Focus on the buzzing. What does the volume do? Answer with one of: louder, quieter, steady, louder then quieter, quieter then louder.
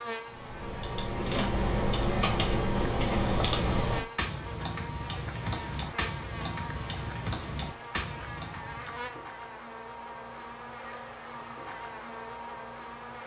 steady.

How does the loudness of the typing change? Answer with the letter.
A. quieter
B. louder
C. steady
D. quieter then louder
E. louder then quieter
A.